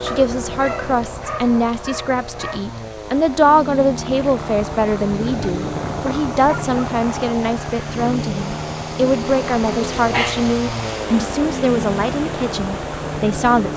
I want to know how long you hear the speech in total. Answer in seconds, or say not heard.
14 s.